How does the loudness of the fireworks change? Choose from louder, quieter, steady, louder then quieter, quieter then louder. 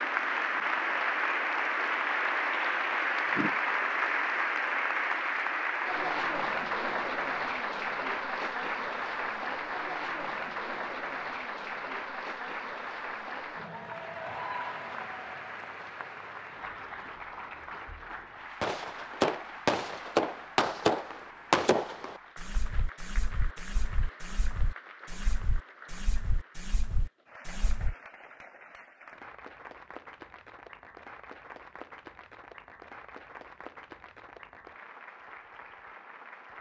quieter.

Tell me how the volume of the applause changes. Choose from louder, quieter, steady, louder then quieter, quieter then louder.
quieter.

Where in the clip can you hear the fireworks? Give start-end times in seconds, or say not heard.
18.6-27.9.